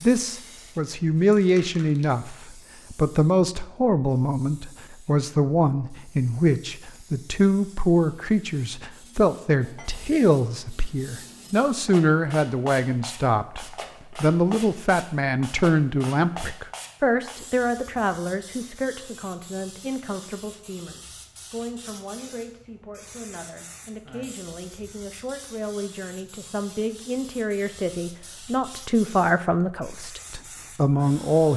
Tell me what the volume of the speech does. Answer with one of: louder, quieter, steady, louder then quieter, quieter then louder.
quieter then louder.